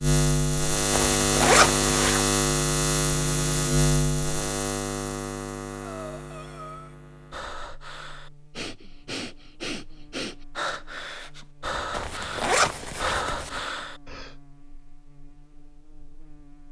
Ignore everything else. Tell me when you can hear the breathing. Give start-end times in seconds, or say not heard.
5.8-14.3.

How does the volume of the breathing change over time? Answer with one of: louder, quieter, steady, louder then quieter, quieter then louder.
louder.